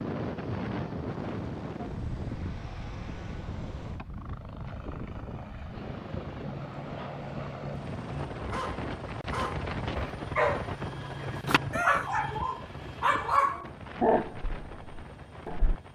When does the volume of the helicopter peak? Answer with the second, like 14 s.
10 s.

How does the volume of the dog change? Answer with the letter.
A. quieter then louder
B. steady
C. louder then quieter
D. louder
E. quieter
D.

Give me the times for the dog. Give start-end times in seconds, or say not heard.
6.5-15.8.